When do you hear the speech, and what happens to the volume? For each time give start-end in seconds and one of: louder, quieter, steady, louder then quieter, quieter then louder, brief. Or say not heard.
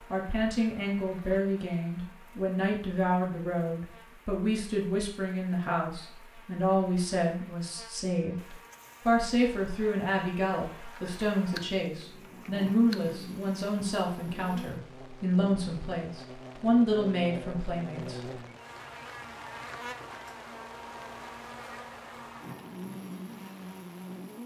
0.1-18.4 steady.